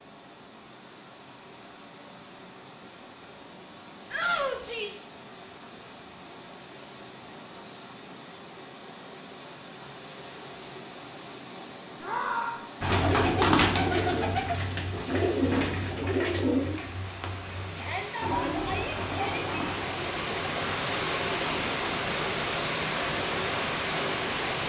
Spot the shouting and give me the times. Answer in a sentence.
You can hear the shouting from 4.1 to 5.0 s, from 12.0 to 12.7 s and from 17.8 to 19.4 s.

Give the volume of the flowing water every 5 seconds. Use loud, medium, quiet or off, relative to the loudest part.
quiet, quiet, quiet, medium, loud.